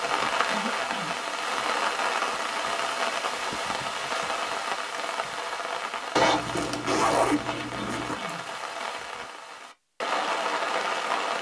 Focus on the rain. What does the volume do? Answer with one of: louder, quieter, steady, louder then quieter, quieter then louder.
quieter then louder.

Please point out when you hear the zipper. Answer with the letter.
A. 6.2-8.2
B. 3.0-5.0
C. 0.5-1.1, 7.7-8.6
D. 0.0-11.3
A.